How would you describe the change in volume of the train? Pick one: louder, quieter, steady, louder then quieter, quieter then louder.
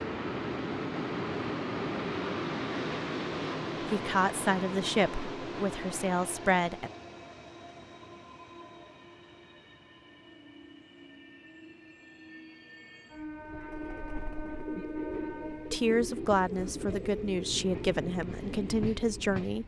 quieter then louder.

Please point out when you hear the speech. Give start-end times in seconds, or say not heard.
3.8-6.9, 15.7-19.6.